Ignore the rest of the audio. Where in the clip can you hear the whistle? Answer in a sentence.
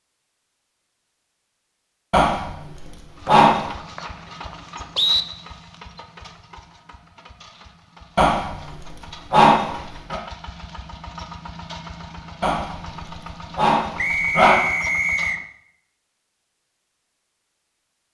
The whistle can be heard from 3.2 to 5.2 s and from 13.9 to 15.4 s.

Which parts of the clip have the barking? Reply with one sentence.
The barking can be heard from 2.1 to 3.7 s, from 8.2 to 10.2 s and from 12.4 to 14.7 s.